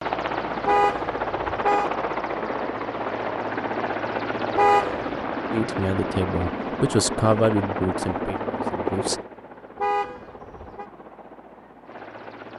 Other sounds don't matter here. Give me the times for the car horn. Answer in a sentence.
You can hear the car horn from 0.7 to 1.9 s, from 4.5 to 5.1 s and from 9.8 to 10.8 s.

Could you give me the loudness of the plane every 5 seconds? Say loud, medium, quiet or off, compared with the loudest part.
loud, loud, quiet.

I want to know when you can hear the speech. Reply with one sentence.
The speech can be heard from 5.5 to 9.2 s.